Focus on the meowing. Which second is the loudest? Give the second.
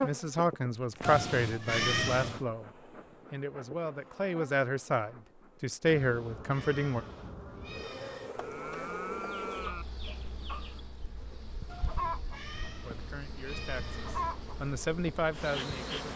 2 s.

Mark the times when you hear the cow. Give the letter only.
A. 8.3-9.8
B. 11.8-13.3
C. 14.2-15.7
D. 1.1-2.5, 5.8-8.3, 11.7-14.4
A.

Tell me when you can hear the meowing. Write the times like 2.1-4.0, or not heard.
1.1-2.5, 5.8-8.3, 11.7-14.4.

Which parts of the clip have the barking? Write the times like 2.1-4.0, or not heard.
not heard.